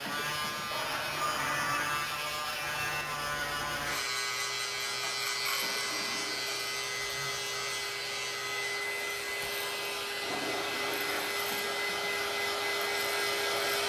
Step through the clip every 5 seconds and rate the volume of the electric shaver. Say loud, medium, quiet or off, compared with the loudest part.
loud, loud, medium.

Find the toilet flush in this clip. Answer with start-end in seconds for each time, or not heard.
0.7-1.9, 4.8-6.7, 10.1-11.3.